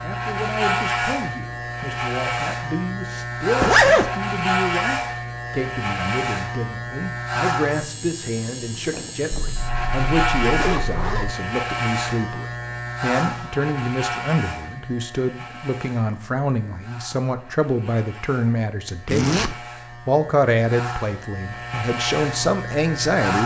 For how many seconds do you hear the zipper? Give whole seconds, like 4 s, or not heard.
3 s.